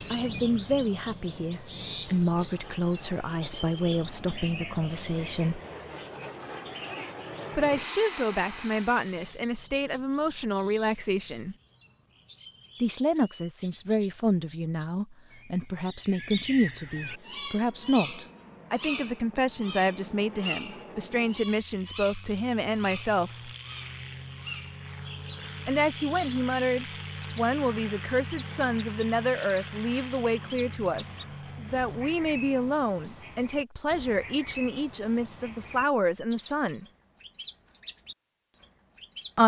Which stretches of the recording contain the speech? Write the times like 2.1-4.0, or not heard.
0.1-5.6, 7.5-11.6, 12.8-23.5, 25.6-36.9.